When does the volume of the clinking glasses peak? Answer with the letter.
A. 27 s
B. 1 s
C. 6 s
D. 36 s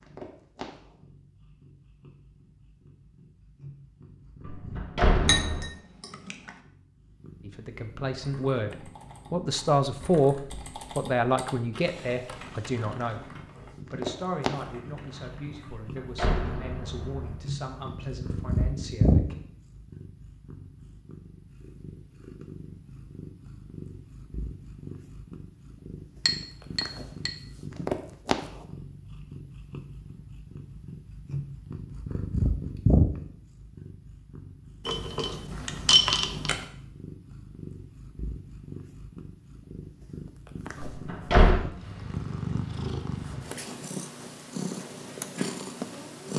D.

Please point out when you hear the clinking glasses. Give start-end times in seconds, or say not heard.
5.2-6.5, 26.2-27.3, 34.9-36.6.